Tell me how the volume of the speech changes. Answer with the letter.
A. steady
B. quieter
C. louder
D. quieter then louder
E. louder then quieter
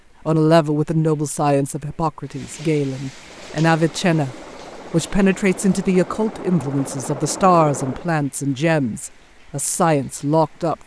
A.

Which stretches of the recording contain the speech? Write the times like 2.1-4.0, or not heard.
0.2-10.8.